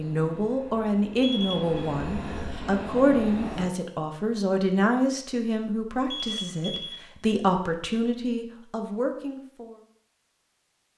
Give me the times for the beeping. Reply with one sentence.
The beeping can be heard from 1.2 to 1.9 s and from 6.1 to 7.0 s.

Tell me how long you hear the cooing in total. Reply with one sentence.
The cooing can't be heard in this clip.